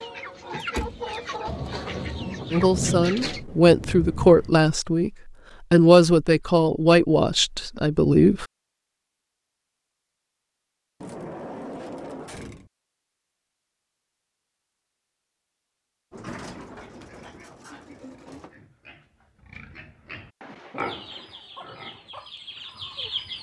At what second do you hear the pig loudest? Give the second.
21 s.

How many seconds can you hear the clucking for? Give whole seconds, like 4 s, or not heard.
6 s.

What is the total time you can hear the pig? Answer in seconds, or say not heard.
6 s.